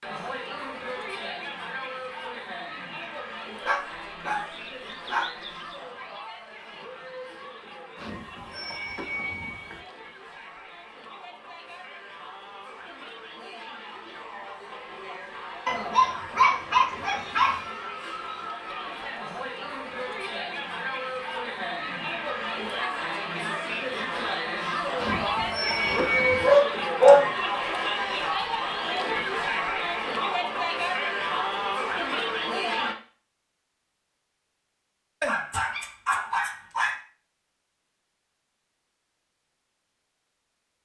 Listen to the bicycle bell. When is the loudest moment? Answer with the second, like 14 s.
26 s.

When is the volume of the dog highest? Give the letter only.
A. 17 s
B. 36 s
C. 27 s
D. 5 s
C.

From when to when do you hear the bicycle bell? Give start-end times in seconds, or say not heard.
8.0-9.8, 24.9-26.5.